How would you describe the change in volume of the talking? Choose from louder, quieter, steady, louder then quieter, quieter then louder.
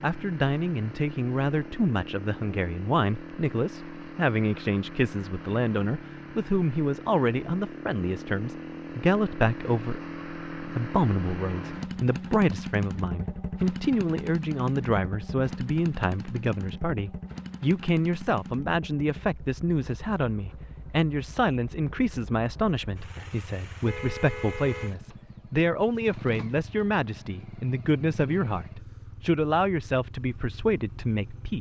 steady.